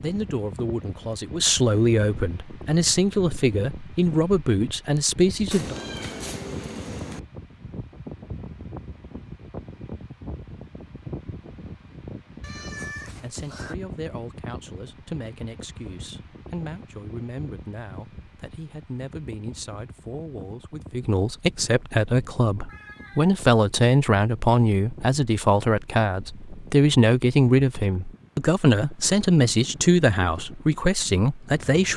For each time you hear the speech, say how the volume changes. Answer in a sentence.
You can hear the speech from 0.0 to 5.8 s, getting louder; and from 13.1 to 31.9 s, getting louder.